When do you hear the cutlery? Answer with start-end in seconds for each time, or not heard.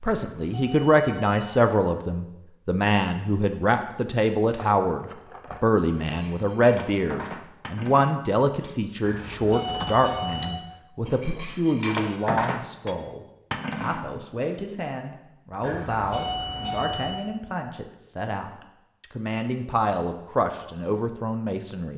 4.5-14.1.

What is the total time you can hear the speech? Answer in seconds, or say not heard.
22 s.